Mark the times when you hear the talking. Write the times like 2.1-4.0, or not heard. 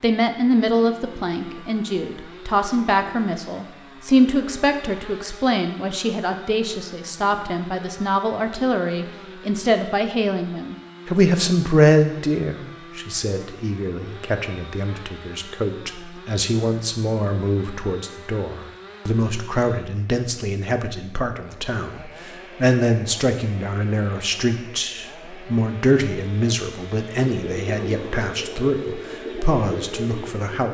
0.0-30.6.